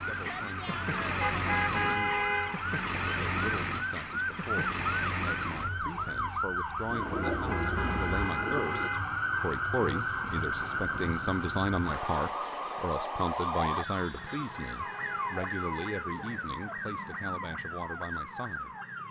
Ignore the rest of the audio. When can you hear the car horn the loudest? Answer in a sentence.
The loudest moment of the car horn is at 2 seconds.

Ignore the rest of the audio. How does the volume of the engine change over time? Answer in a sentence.
The volume of the engine goes down.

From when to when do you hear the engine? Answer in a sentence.
You can hear the engine from 0.0 to 8.3 s.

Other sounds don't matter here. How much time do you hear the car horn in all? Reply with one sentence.
You can hear the car horn for 5 seconds altogether.